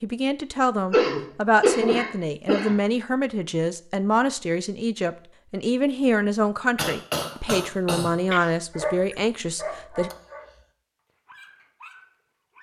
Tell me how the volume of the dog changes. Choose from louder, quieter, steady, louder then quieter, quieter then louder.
quieter.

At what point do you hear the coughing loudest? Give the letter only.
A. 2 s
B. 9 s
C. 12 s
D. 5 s
A.